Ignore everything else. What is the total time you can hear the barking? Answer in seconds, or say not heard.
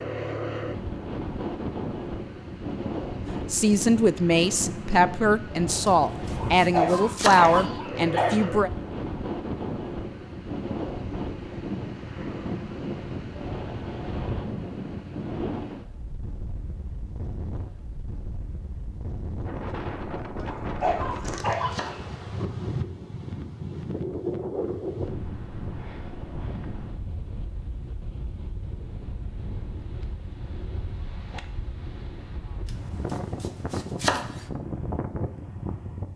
4 s.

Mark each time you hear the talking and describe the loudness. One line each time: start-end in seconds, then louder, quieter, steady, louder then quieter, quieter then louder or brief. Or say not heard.
3.5-8.7 steady.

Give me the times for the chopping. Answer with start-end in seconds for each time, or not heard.
5.8-7.6, 20.4-22.1, 32.6-34.5.